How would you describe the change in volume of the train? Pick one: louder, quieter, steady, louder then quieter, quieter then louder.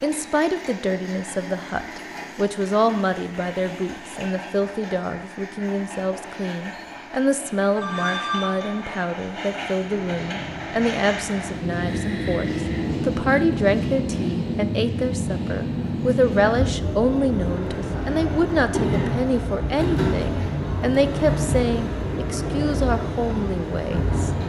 louder.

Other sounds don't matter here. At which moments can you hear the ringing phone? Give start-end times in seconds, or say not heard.
7.8-8.9.